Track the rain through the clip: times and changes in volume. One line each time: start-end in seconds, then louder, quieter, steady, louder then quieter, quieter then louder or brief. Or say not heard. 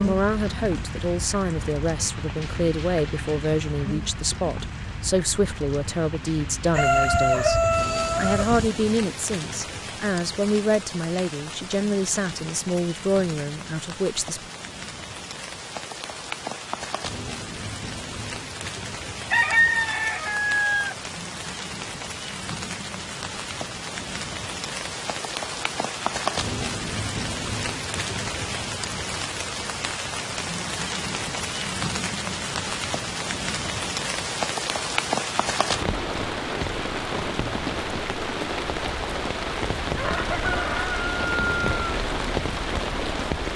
0.0-43.5 louder.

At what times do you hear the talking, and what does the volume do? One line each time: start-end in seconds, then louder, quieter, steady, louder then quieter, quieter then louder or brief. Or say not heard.
0.0-14.4 steady.